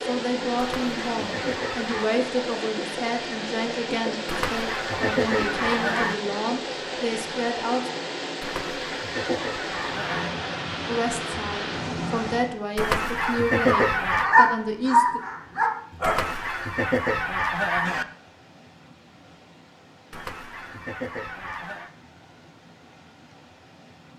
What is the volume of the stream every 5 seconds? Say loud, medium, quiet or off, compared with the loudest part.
loud, loud, loud, quiet, quiet.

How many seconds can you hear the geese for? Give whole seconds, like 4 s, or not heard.
11 s.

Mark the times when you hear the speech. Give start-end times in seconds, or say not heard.
0.0-7.9, 10.8-15.2.